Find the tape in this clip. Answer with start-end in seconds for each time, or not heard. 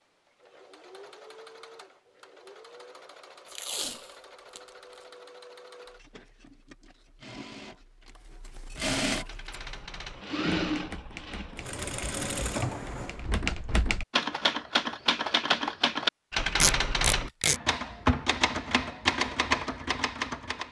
3.5-4.6, 16.6-17.6.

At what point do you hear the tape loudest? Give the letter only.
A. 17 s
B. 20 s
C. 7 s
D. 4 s
A.